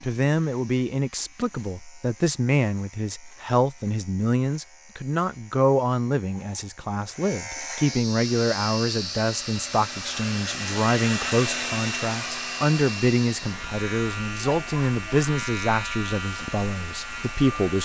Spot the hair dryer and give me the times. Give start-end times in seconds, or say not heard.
8.1-17.8.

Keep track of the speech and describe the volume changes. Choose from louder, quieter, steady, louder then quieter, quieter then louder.
steady.